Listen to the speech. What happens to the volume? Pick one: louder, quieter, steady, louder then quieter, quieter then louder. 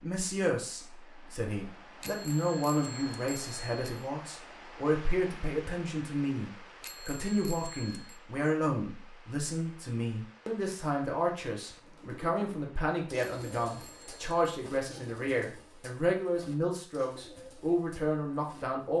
steady.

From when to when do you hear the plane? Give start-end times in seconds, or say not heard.
not heard.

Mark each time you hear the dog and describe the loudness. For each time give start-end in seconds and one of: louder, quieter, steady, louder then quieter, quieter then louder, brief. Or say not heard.
not heard.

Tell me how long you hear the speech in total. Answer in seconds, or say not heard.
19 s.